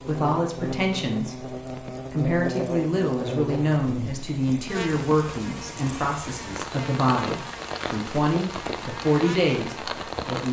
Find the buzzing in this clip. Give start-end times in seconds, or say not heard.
0.0-10.2.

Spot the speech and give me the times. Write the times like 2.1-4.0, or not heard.
0.1-10.4.